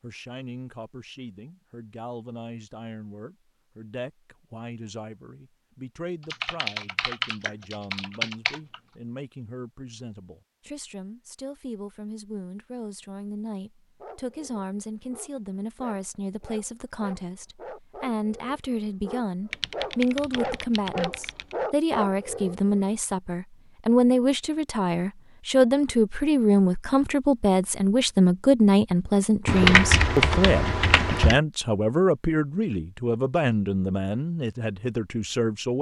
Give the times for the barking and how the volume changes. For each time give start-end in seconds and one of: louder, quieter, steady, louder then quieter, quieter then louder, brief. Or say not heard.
14.0-22.8 louder.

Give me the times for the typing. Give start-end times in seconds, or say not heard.
6.3-8.8, 19.5-21.4, 29.4-31.4.